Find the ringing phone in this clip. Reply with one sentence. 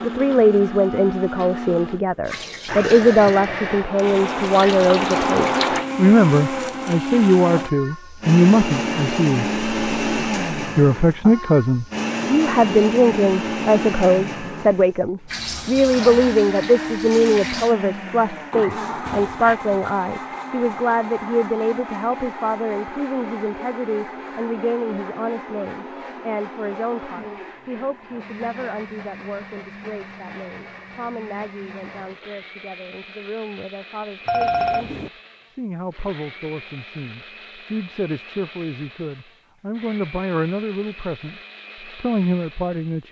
You can hear the ringing phone from 19.1 to 19.6 s and from 34.2 to 35.1 s.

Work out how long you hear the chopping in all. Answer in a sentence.
The chopping can't be heard in this clip.